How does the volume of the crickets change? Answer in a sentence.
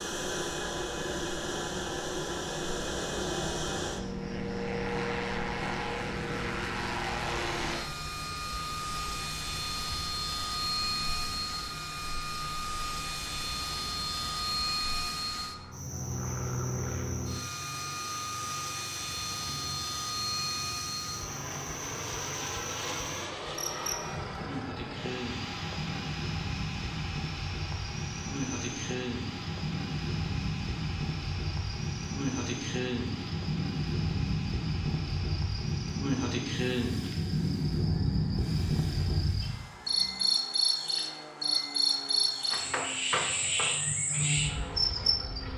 The volume of the crickets goes up.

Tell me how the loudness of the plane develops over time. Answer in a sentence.
The loudness of the plane goes down.